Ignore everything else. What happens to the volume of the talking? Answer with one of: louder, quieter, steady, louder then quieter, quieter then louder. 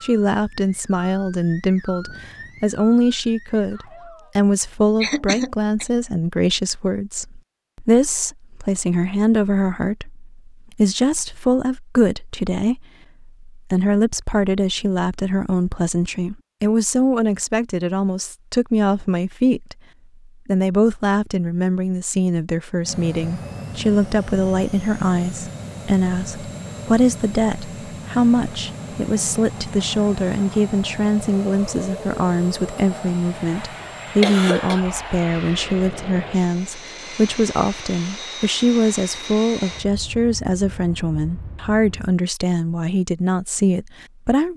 steady.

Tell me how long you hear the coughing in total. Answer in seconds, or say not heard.
2 s.